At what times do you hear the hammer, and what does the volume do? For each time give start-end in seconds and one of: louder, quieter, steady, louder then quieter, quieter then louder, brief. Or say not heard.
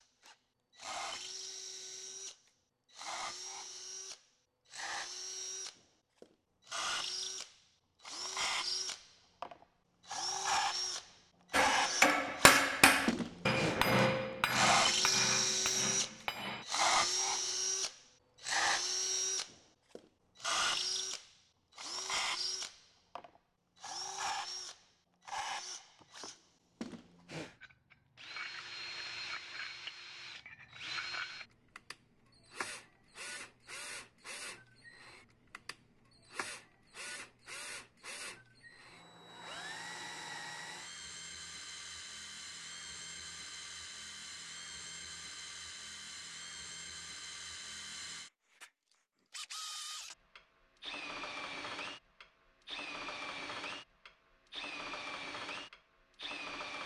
11.5-16.6 quieter.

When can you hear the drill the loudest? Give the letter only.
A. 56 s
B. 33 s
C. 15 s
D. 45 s
C.